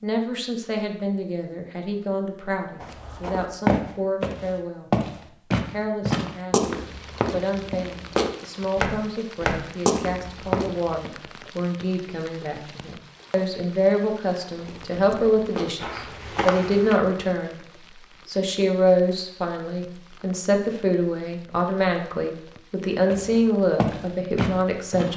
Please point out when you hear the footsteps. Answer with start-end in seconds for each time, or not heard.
2.8-11.1, 14.6-16.9, 23.1-25.1.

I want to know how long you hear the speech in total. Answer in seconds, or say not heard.
24 s.